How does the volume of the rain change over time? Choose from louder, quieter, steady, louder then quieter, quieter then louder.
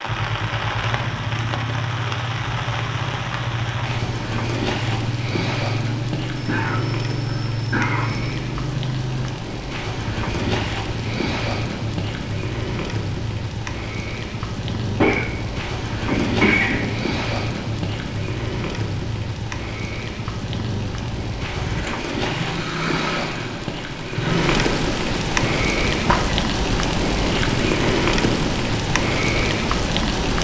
louder.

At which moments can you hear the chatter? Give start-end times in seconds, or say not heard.
not heard.